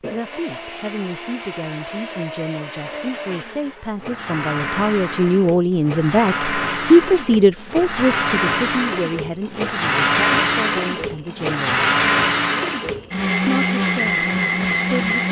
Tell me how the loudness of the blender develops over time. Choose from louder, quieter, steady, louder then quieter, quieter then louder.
louder.